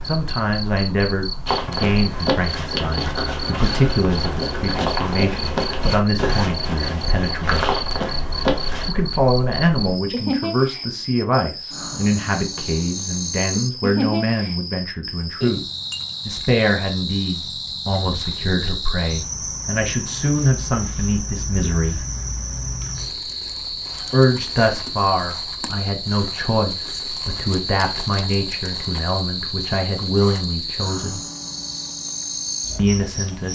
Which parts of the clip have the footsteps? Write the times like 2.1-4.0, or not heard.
1.4-8.9.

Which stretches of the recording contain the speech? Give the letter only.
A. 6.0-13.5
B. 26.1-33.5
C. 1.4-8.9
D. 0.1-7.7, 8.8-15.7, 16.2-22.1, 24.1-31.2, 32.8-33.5
D.